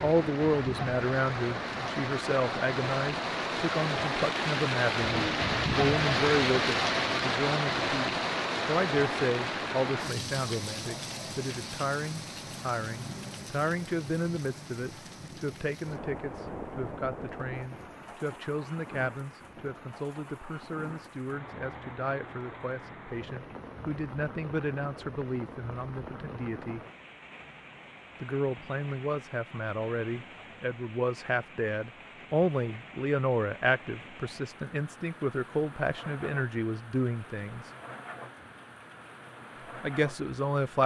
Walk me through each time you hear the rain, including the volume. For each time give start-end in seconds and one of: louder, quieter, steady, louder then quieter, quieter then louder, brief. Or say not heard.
0.0-40.8 quieter.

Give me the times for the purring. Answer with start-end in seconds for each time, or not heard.
not heard.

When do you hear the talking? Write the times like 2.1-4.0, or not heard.
0.0-26.8, 28.2-37.7, 39.8-40.8.